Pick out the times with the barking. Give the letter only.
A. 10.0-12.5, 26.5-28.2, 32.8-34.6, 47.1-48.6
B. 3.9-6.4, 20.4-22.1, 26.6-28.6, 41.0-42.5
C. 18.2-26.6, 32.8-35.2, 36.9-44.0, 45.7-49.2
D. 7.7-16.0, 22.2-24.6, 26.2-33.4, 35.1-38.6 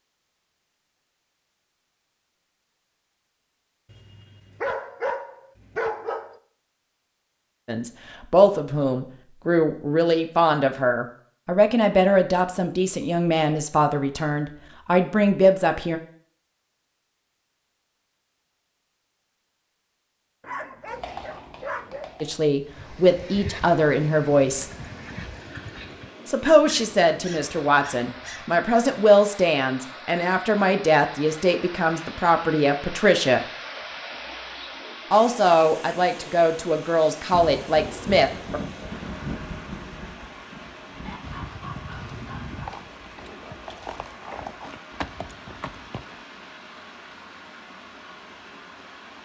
B.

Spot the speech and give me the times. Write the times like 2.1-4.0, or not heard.
7.7-16.0, 22.2-24.6, 26.2-33.4, 35.1-38.6.